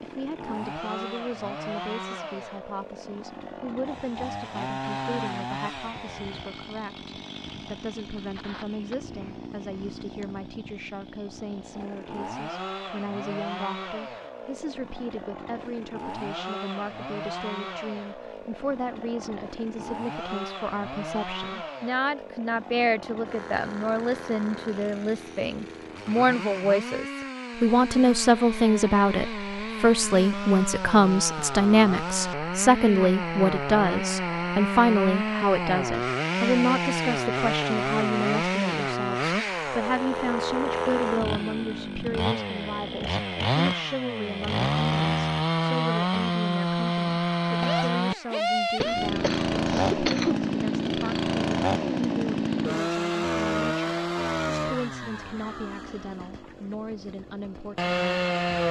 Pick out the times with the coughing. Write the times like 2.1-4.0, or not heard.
48.8-50.4.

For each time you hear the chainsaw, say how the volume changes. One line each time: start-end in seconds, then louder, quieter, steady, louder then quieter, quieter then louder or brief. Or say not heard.
0.0-58.6 louder.